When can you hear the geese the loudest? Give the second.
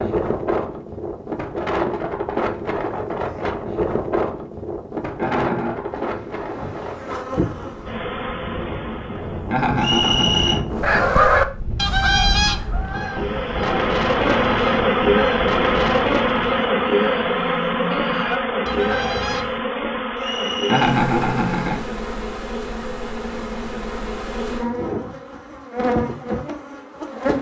11 s.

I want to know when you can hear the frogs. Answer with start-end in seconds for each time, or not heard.
not heard.